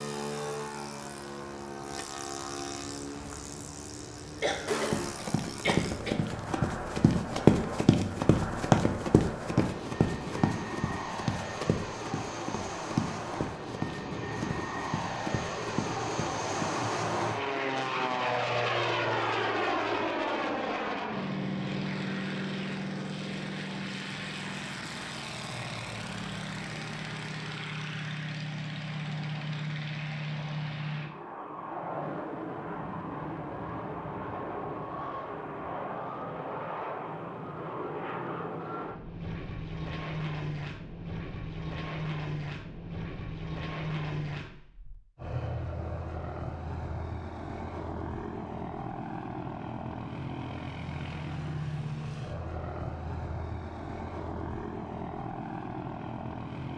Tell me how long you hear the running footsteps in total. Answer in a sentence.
You can hear the running footsteps for 12 seconds altogether.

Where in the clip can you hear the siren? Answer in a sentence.
The siren can't be heard in this clip.